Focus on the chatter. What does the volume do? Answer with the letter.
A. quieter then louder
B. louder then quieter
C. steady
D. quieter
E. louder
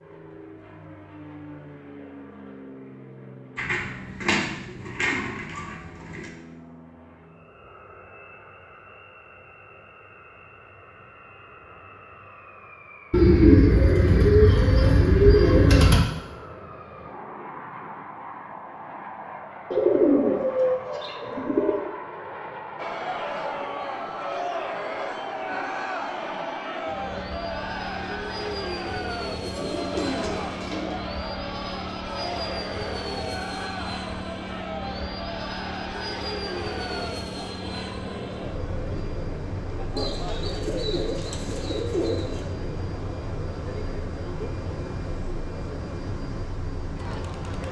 D.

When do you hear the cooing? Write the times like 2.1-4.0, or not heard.
3.5-6.2, 13.1-16.1, 19.7-21.9, 29.4-31.0, 40.0-42.5.